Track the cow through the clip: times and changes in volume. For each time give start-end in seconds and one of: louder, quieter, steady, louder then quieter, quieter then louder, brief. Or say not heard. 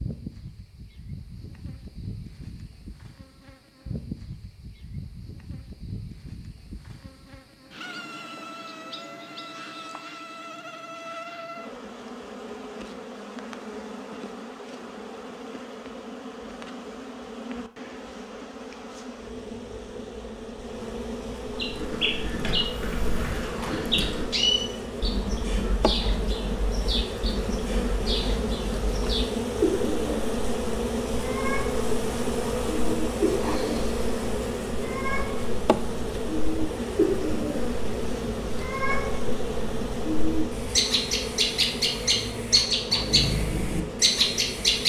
not heard.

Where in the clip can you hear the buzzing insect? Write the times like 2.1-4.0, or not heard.
0.0-44.8.